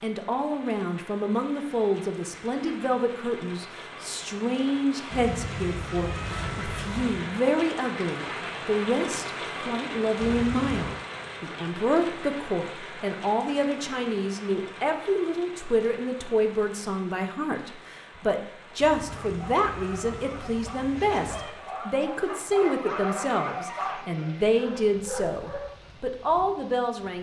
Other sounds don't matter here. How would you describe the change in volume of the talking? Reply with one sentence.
The volume of the talking stays about the same.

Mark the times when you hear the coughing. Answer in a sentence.
You can't hear the coughing here.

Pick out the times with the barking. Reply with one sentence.
You can hear the barking from 19.1 to 25.9 s.